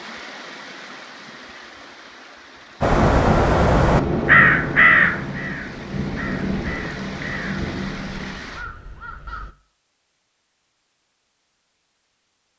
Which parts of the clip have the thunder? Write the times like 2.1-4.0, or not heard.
3.8-8.4.